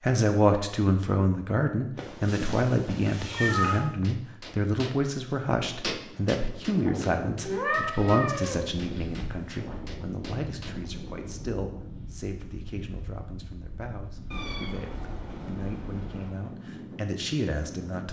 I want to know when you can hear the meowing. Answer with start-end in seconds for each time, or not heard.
1.9-3.8, 7.5-9.1, 14.3-16.3.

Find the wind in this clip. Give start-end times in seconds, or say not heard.
5.5-18.0.